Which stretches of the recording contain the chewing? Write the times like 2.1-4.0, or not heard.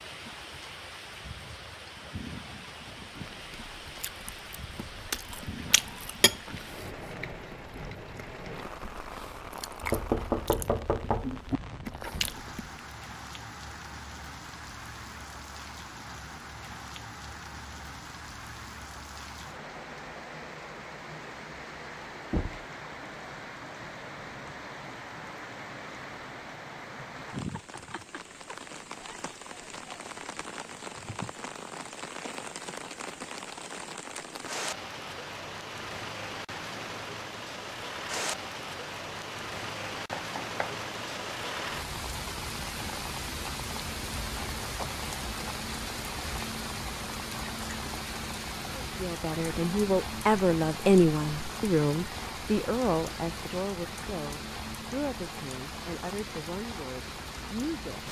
3.1-12.8.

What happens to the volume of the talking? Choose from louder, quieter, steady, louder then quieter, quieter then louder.
quieter.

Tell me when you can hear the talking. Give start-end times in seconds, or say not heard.
48.7-58.0.